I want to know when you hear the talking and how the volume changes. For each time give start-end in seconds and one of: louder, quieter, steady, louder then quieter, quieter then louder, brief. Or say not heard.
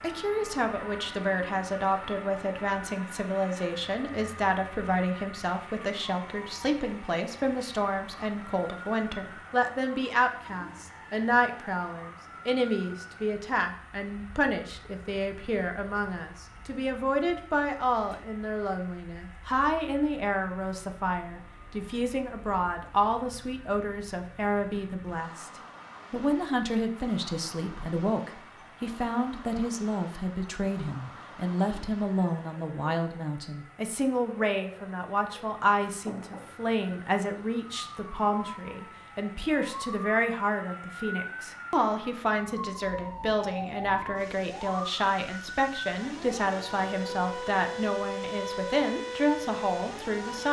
0.0-50.4 steady.